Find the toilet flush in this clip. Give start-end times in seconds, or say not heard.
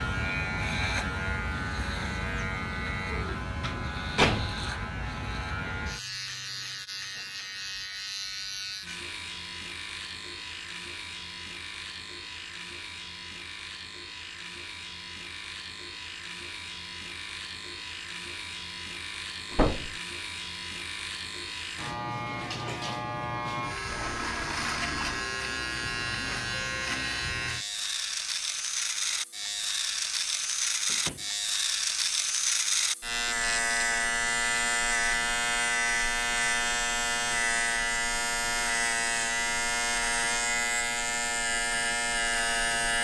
23.9-25.2.